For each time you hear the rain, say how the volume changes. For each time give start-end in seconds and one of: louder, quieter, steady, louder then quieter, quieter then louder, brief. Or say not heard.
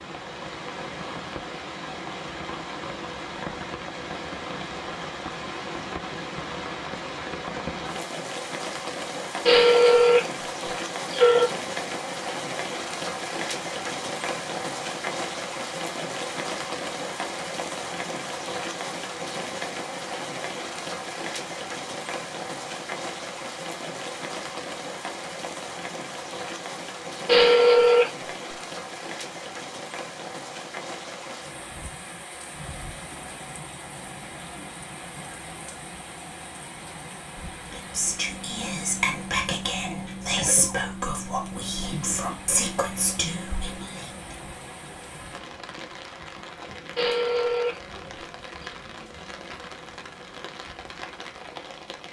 0.0-52.0 quieter.